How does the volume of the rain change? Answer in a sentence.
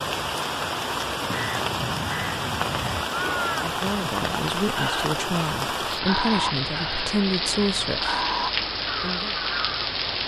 The loudness of the rain stays about the same.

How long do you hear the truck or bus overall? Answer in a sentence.
You can't hear the truck or bus here.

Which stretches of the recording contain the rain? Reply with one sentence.
The rain can be heard from 0.0 to 10.2 s.